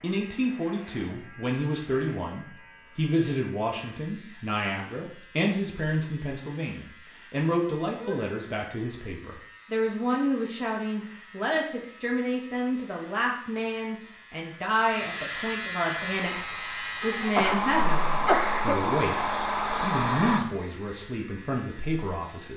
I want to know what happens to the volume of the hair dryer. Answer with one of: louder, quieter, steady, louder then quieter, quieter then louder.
louder.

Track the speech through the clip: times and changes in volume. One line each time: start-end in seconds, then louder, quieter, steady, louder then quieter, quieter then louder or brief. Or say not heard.
0.0-22.5 steady.